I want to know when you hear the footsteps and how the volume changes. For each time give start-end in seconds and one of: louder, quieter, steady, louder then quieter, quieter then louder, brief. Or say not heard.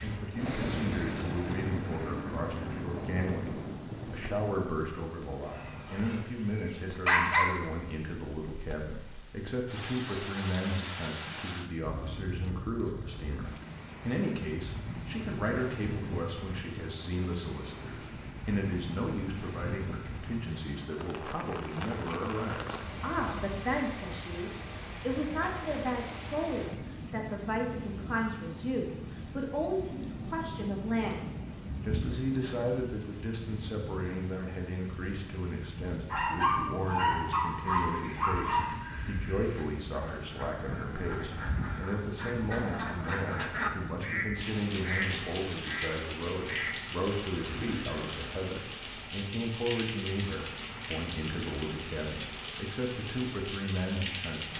not heard.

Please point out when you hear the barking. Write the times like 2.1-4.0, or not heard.
5.5-7.5, 36.1-38.7.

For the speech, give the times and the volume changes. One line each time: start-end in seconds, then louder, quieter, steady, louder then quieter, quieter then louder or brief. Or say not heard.
0.0-54.5 steady.